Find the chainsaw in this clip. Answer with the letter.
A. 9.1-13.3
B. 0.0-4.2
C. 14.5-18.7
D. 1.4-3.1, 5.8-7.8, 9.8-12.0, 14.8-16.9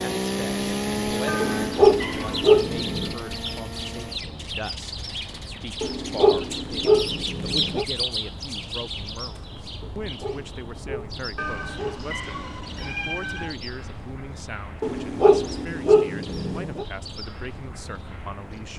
B.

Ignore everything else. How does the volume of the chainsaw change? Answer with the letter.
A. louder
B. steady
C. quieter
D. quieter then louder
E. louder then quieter
C.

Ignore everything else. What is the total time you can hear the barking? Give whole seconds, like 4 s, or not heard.
8 s.